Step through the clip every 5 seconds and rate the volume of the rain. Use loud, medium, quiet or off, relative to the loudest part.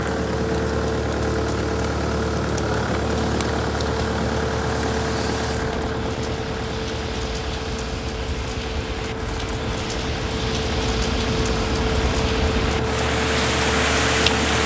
quiet, medium, loud.